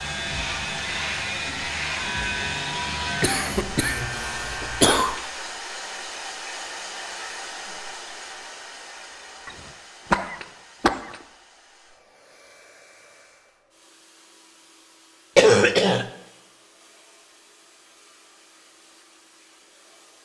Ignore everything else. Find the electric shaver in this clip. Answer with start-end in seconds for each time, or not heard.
0.0-5.2.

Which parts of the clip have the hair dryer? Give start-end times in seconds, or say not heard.
0.0-20.2.